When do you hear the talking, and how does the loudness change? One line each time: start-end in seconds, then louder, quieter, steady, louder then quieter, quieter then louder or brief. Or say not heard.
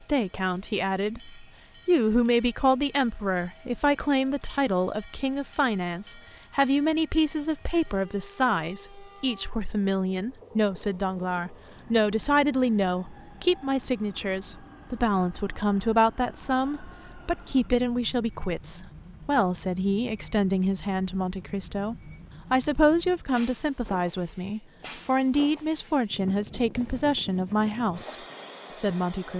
0.1-28.1 steady
28.8-29.3 brief.